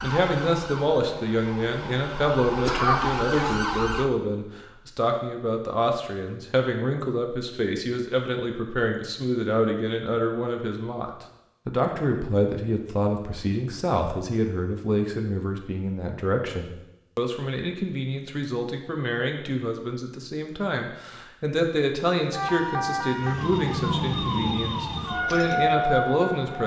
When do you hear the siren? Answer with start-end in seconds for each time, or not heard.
0.0-4.1, 22.3-26.6.